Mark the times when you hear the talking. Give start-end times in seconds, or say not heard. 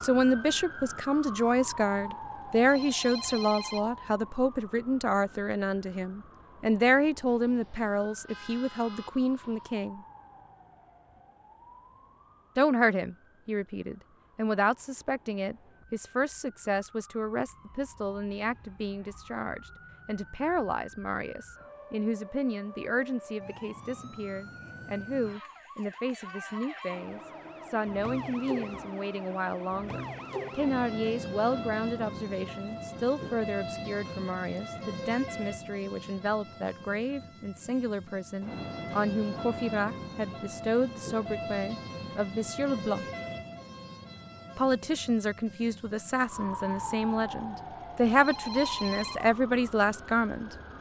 0.0-10.0, 12.6-43.0, 44.5-50.5.